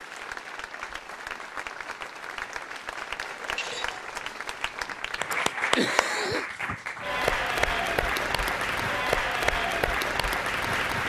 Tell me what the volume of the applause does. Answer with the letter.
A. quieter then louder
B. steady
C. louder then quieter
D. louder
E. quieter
D.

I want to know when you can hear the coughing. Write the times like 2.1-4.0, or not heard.
5.3-6.5.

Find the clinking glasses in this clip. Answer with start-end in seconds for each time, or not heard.
3.2-4.0.